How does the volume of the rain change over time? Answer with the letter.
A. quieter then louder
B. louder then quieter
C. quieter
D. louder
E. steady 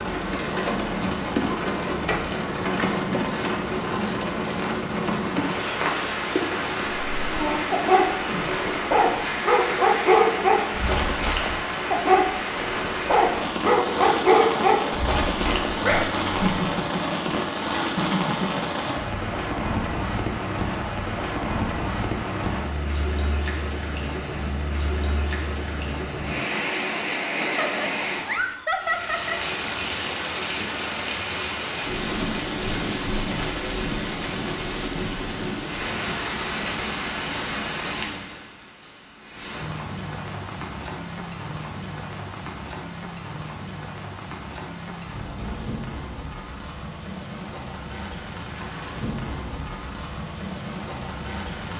C.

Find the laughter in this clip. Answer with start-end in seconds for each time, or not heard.
16.4-18.9, 27.4-29.4.